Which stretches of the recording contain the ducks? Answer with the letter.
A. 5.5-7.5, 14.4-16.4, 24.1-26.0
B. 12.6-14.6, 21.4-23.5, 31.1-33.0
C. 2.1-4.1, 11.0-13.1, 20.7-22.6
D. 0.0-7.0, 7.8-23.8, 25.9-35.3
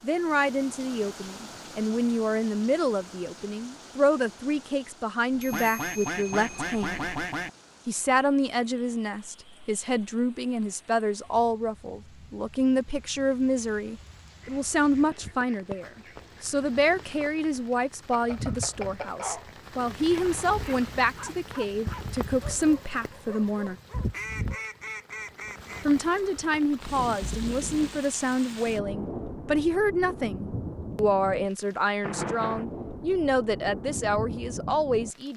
A.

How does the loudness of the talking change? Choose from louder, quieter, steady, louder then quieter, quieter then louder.
steady.